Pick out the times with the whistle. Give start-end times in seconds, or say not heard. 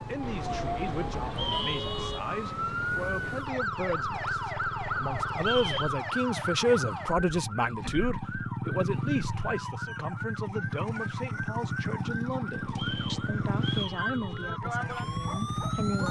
1.3-1.8, 5.4-5.9, 12.7-14.0.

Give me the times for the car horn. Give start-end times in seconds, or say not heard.
0.2-2.2, 12.6-14.6.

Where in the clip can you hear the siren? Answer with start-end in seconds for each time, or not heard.
0.0-16.0.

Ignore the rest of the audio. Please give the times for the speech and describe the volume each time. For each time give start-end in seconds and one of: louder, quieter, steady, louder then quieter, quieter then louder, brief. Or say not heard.
0.1-16.0 louder then quieter.